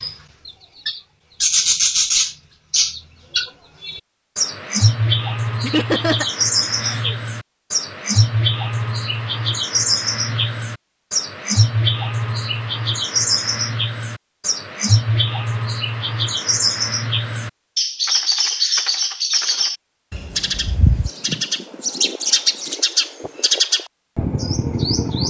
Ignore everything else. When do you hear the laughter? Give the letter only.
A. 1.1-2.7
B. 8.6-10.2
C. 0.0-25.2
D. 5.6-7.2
D.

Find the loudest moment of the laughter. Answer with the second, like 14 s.
6 s.